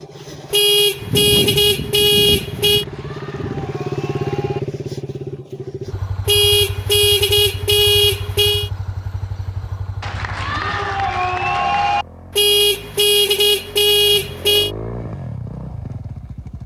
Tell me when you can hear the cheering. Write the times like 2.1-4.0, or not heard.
2.6-4.6, 10.0-12.1.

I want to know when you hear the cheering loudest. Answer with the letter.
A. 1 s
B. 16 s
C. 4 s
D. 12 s
D.